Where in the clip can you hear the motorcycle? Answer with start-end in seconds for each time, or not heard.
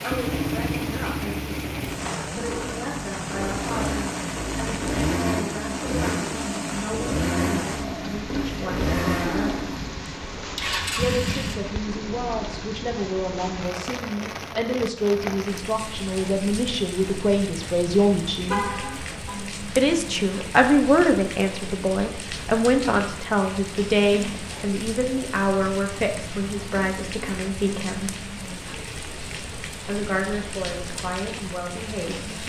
0.0-11.6.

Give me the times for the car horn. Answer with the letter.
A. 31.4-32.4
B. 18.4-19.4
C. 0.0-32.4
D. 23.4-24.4
B.